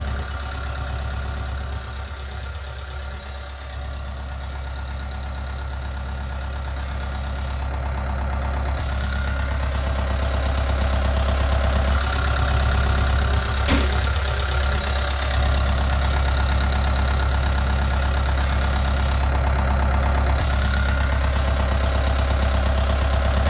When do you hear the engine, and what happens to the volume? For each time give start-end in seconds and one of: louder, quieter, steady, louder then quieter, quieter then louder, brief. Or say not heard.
0.0-23.4 louder.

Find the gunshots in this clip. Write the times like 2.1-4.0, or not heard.
13.7-14.2.